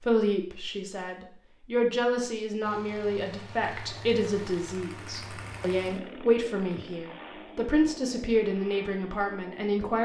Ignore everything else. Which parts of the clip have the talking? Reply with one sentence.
You can hear the talking from 0.1 to 10.0 s.